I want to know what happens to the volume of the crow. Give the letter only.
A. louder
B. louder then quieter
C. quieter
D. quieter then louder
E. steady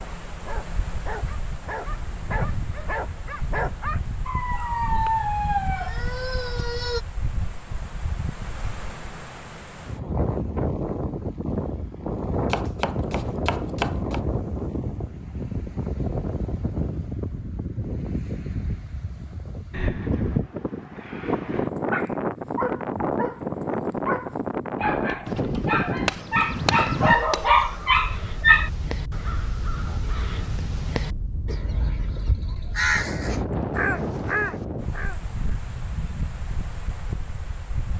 A.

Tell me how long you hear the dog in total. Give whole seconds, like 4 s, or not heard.
14 s.